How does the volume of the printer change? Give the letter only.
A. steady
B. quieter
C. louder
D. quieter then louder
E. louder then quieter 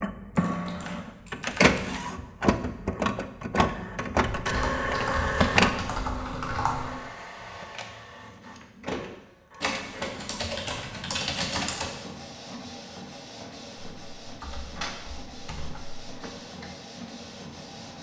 B.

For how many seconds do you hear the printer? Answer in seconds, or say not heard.
18 s.